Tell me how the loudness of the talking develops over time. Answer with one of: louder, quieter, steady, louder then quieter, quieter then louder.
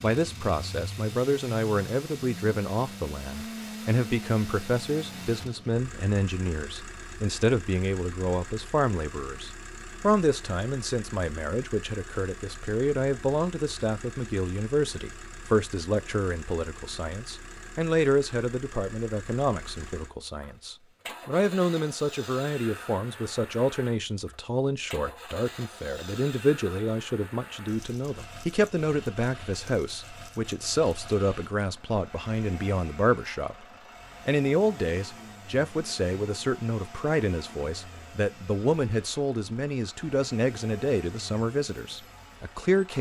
steady.